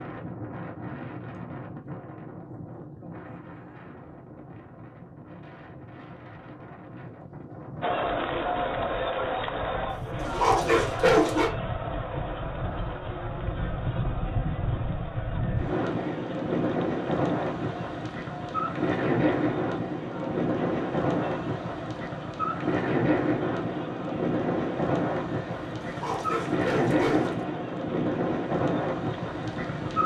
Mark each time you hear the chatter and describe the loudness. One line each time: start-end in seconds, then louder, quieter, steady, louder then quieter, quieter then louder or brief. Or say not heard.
7.8-30.0 quieter.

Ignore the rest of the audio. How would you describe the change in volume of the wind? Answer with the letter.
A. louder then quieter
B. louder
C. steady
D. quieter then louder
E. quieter
B.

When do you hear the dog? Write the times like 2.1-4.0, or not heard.
10.3-11.5, 25.9-27.4.